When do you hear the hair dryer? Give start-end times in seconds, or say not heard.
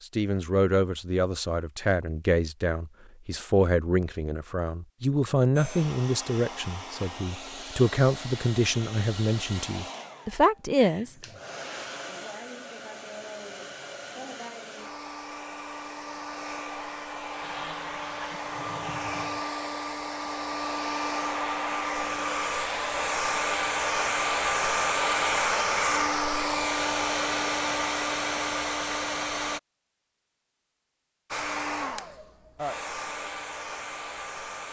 5.5-29.6, 31.3-34.6.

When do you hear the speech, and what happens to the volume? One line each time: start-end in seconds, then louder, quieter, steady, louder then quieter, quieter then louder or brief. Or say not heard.
0.0-11.2 steady.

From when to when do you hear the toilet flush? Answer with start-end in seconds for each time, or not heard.
17.4-19.4.